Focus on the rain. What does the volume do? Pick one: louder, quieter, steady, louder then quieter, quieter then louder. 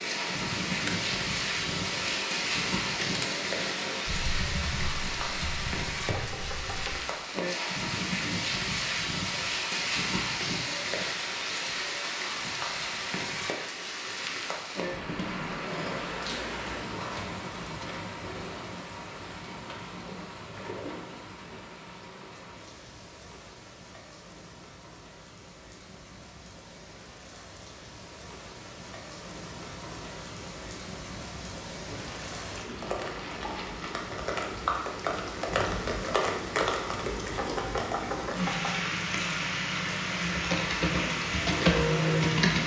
quieter then louder.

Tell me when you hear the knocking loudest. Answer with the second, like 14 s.
38 s.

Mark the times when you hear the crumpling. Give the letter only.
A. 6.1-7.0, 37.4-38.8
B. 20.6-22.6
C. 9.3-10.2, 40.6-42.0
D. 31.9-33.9
D.